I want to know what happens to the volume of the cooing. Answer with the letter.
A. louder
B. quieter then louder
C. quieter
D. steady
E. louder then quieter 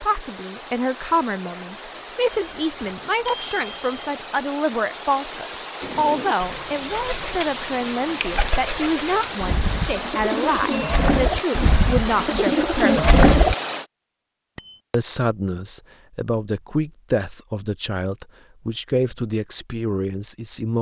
A.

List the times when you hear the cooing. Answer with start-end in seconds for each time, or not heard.
5.8-13.6.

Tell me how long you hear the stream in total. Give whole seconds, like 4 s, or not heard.
14 s.